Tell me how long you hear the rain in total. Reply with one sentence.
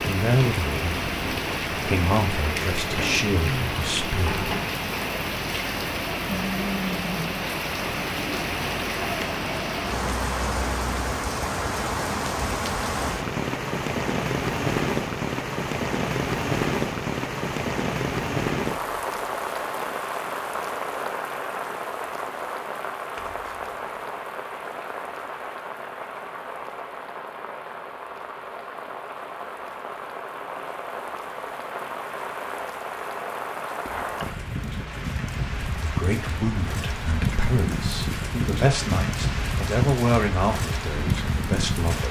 The rain can be heard for 42 seconds in total.